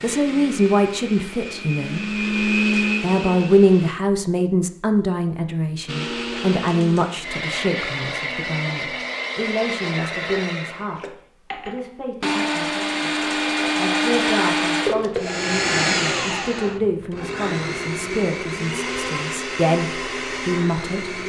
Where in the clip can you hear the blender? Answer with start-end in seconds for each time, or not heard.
0.0-4.0, 5.8-21.2.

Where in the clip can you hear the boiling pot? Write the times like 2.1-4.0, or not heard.
not heard.